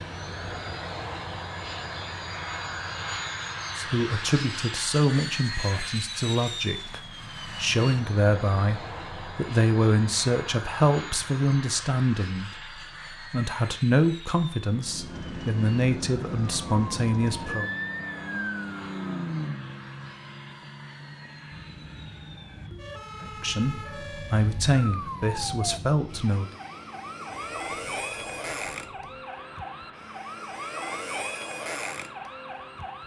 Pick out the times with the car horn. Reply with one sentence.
The car horn can't be heard in this clip.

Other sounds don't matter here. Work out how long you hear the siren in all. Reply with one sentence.
You can hear the siren for 18 seconds altogether.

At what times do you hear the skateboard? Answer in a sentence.
The skateboard can't be heard in this clip.